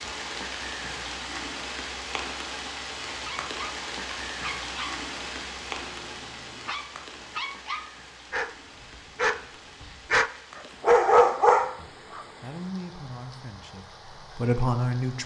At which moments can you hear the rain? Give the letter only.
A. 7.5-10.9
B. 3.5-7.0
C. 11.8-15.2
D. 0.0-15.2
D.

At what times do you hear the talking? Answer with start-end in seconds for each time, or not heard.
11.8-15.2.